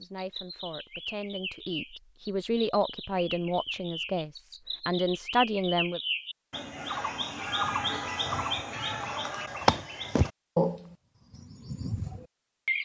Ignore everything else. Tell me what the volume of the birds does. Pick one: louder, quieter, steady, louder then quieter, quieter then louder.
louder.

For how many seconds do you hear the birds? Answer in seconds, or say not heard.
13 s.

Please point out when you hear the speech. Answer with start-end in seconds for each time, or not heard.
0.0-6.0.